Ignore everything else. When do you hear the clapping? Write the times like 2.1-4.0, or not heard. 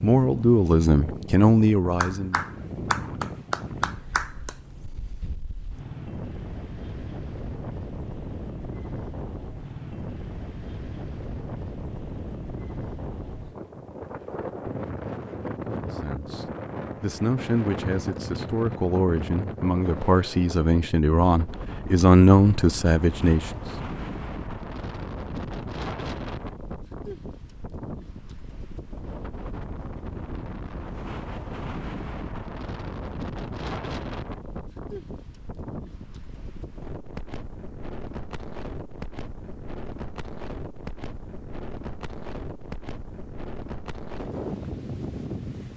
1.9-4.5.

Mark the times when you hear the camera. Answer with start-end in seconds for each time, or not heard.
not heard.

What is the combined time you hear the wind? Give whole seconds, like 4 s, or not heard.
46 s.